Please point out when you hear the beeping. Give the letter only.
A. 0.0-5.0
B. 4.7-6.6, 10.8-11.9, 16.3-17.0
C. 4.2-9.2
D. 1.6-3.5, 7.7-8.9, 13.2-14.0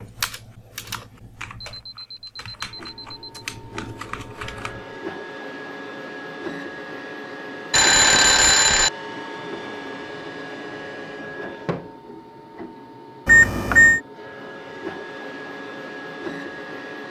D.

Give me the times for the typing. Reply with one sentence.
The typing can be heard from 0.0 to 5.0 s.